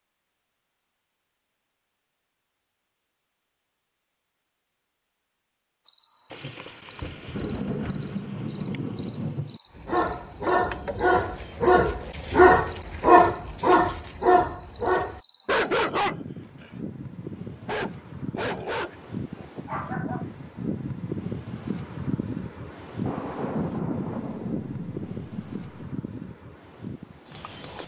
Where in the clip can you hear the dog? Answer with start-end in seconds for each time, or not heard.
9.8-16.7, 17.5-20.2.